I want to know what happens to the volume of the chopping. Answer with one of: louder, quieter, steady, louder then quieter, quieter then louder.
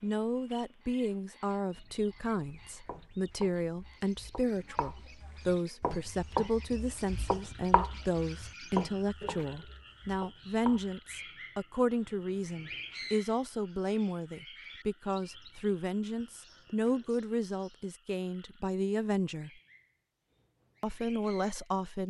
louder then quieter.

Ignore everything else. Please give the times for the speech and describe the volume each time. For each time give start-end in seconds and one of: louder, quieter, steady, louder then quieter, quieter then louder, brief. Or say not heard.
0.0-19.5 steady
20.8-22.0 brief.